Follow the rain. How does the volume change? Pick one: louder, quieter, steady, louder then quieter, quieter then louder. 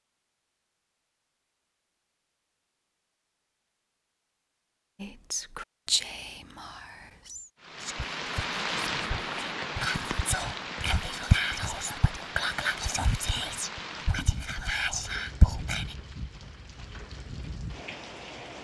quieter.